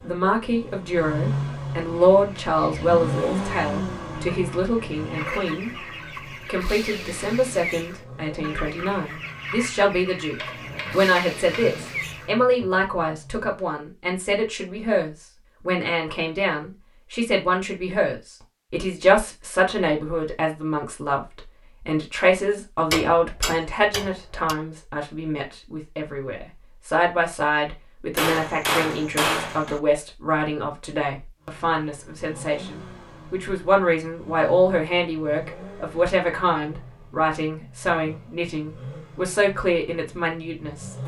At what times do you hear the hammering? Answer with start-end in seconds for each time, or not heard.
10.3-11.9, 22.9-24.6, 28.1-29.8.